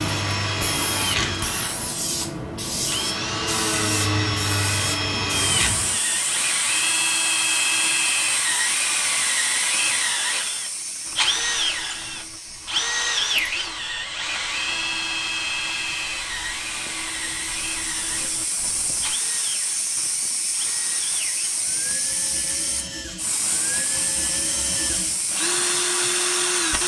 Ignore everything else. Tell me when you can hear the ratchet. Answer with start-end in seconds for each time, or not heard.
not heard.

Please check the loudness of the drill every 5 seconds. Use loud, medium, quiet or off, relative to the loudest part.
loud, loud, loud, medium, medium, loud.